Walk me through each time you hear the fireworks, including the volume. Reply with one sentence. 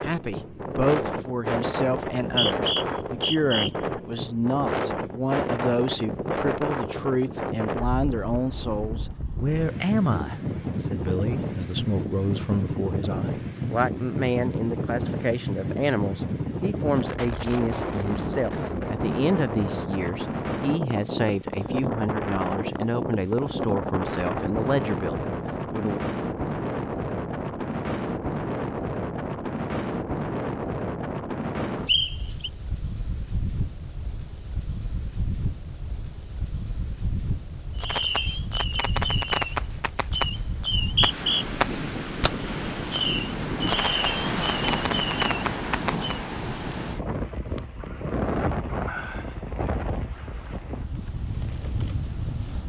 The fireworks can be heard from 37.8 to 46.2 s, at a steady volume.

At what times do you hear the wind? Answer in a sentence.
The wind can be heard from 0.0 to 52.6 s.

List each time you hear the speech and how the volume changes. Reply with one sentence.
You can hear the speech from 0.0 to 26.0 s, at a steady volume.